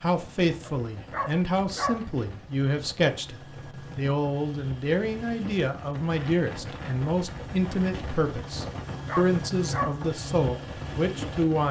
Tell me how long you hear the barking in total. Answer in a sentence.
The barking can be heard for 3 seconds in total.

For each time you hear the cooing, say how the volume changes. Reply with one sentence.
The cooing can't be heard in this clip.